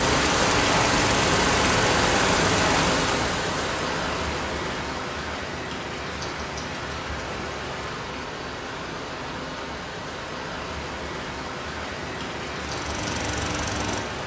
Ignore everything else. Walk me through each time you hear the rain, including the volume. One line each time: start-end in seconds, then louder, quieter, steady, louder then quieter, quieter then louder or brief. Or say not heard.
0.0-14.2 quieter.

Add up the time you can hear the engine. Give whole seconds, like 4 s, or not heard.
5 s.